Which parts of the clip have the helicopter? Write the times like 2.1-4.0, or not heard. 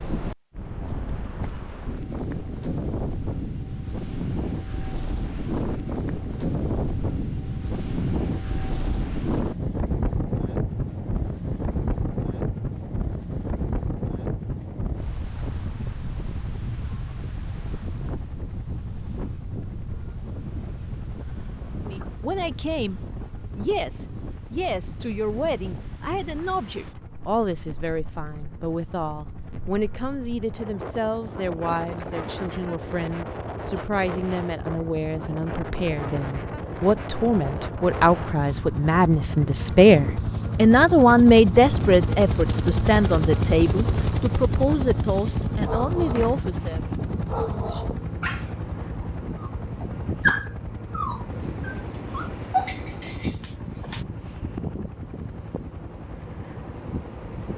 10.8-57.5.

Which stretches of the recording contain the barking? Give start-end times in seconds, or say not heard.
45.6-54.0.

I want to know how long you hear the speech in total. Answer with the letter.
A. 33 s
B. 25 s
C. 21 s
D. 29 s
B.